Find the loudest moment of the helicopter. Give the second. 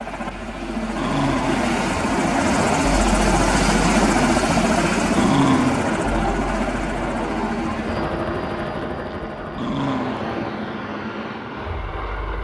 4 s.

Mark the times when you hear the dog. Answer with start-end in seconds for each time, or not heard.
0.9-1.6, 5.2-5.8, 9.6-10.4.